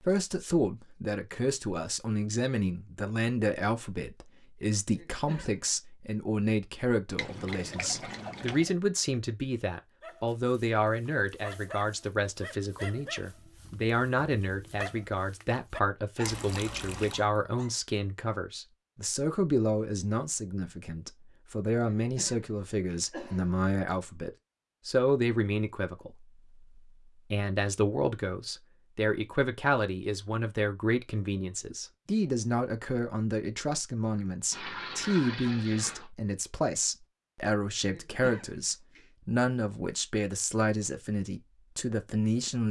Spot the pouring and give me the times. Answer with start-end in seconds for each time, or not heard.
7.2-8.7, 16.2-17.2, 34.5-36.1.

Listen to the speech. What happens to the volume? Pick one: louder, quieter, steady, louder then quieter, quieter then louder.
steady.